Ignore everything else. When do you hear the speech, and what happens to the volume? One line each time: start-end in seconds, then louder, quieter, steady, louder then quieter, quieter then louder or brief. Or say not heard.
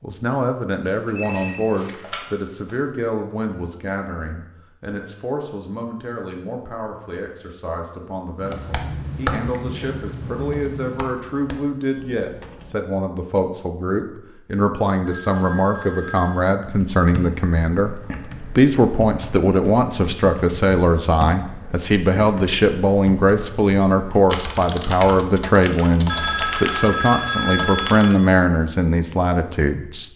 0.0-30.1 louder.